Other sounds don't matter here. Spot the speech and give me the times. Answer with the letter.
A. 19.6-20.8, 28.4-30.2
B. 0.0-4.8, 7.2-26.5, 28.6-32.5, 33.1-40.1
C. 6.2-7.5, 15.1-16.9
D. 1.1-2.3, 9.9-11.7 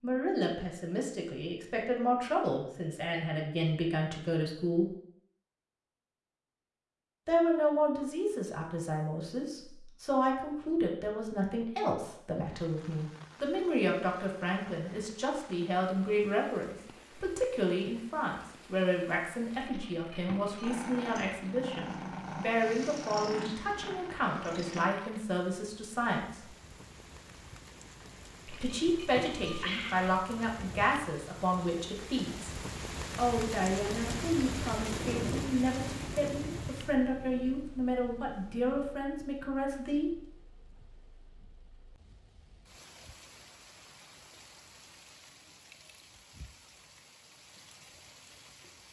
B.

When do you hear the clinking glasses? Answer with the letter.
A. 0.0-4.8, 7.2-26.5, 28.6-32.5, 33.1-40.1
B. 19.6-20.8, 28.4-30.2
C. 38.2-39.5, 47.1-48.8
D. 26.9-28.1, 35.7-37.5
B.